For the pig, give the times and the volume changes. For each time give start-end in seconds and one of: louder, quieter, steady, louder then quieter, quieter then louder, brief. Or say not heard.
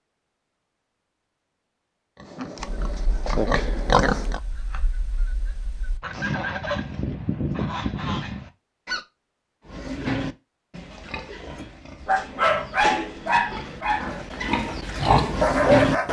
2.1-4.4 brief
9.7-16.0 quieter then louder.